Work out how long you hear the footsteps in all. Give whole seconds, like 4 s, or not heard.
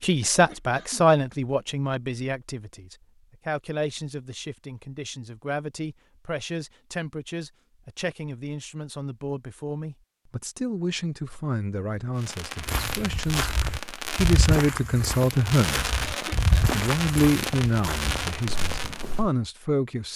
7 s.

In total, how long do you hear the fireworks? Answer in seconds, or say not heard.
7 s.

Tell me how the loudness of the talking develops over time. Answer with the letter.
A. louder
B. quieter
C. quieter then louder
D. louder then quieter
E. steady
C.